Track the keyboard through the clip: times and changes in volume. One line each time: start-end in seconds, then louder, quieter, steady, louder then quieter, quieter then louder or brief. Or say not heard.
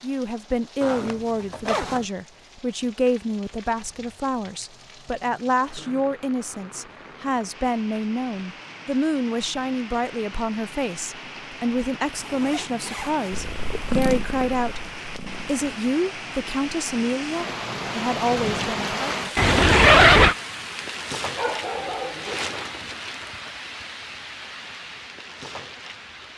not heard.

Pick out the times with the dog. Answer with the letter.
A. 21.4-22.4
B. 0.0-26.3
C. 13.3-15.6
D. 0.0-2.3
A.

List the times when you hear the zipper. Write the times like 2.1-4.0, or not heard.
0.8-2.0, 12.2-14.2, 19.4-20.4.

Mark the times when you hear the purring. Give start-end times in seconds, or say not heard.
13.3-15.6.